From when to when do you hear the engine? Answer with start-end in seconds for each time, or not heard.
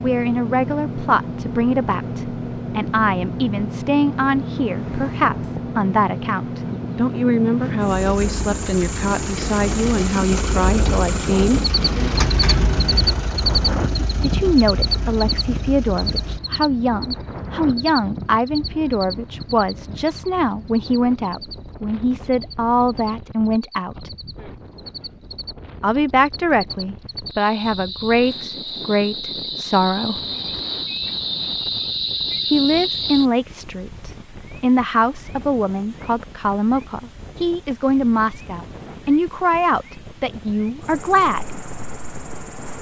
0.0-16.4.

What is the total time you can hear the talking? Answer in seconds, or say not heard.
35 s.